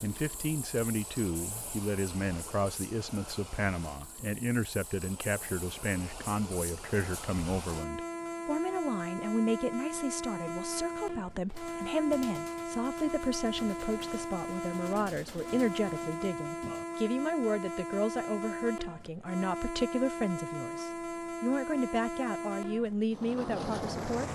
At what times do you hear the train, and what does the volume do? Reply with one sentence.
You can hear the train from 0.0 to 24.3 s, getting louder.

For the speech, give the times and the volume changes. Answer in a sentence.
The speech can be heard from 0.0 to 24.3 s, at a steady volume.